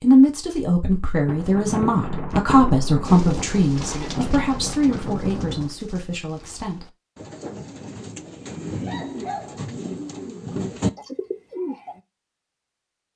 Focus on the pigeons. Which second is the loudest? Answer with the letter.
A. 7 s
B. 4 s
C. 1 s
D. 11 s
D.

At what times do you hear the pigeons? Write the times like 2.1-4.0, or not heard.
3.0-12.0.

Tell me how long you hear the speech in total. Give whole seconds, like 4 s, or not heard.
7 s.